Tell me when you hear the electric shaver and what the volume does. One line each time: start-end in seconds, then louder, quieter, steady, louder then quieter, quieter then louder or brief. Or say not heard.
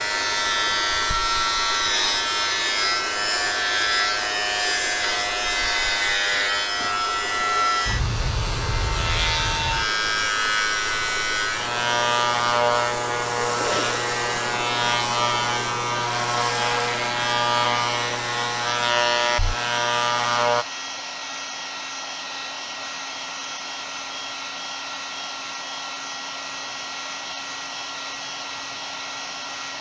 0.0-20.6 steady.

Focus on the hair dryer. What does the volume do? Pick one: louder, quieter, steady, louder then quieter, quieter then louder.
steady.